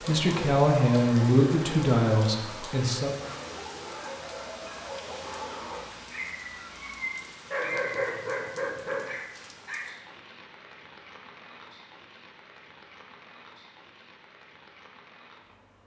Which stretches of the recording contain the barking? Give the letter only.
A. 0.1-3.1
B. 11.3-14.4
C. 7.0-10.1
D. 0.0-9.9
D.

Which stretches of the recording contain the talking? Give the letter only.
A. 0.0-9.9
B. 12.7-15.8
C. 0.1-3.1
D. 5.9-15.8
C.